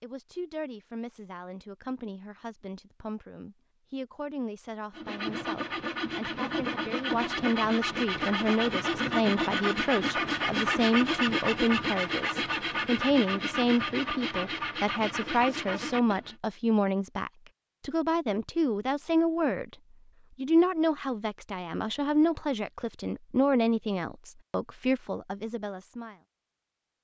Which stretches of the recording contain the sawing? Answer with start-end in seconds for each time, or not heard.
4.9-16.4.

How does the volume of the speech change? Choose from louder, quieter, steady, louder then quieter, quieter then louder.
louder.